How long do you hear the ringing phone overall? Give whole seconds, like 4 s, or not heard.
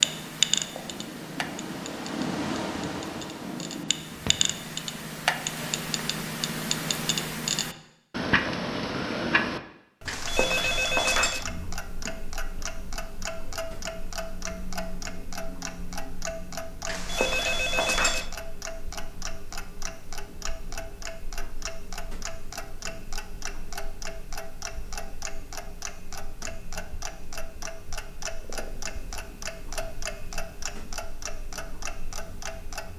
3 s.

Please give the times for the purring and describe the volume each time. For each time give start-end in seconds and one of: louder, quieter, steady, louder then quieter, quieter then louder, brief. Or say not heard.
0.0-4.5 louder then quieter.